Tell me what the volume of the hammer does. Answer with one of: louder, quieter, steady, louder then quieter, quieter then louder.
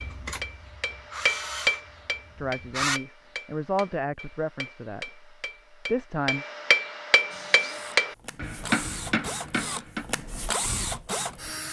quieter then louder.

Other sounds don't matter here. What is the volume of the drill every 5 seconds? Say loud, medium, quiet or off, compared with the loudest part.
loud, medium, loud.